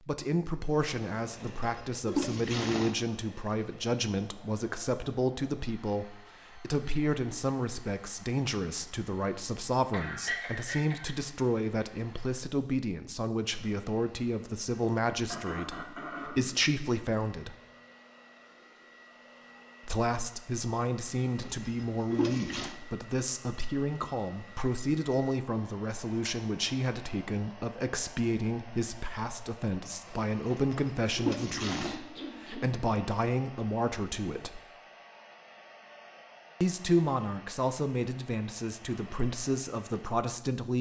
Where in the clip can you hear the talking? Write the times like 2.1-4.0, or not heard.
0.1-17.6, 19.9-34.6, 36.6-40.7.